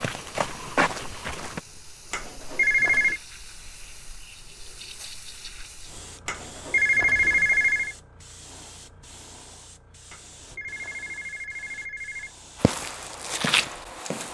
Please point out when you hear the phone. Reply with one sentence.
You can hear the phone from 2.1 to 3.2 s, from 6.2 to 8.0 s and from 10.1 to 12.3 s.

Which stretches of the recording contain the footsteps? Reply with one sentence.
The footsteps can be heard from 0.0 to 1.6 s and from 12.6 to 14.3 s.